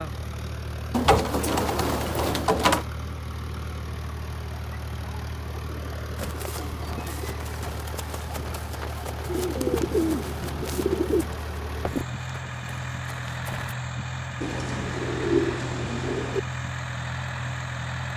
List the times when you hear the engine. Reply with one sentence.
The engine can be heard from 0.0 to 18.1 s.